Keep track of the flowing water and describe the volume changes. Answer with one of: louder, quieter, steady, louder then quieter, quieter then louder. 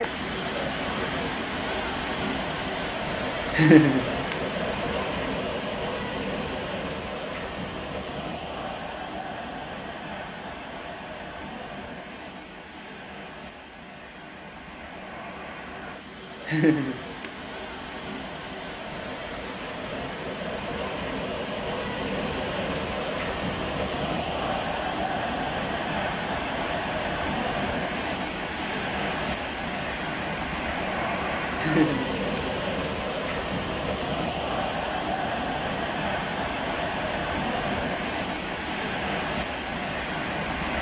quieter then louder.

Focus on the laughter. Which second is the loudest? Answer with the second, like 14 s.
4 s.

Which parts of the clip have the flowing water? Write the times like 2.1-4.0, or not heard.
0.0-40.7.